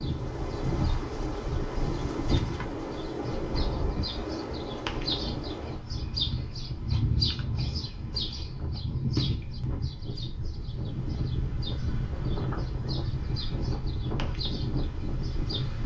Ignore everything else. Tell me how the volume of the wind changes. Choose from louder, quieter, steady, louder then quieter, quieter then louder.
quieter then louder.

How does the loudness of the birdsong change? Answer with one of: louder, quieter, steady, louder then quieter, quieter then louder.
louder then quieter.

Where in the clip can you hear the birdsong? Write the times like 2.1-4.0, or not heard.
0.0-15.8.